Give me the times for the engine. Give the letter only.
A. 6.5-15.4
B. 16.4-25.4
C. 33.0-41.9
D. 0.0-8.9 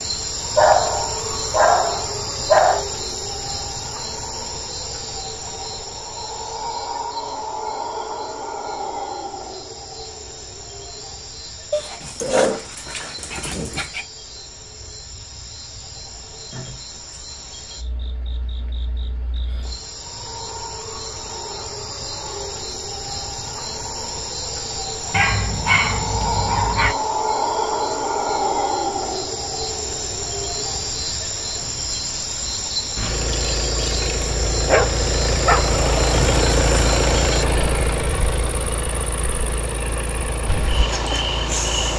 C.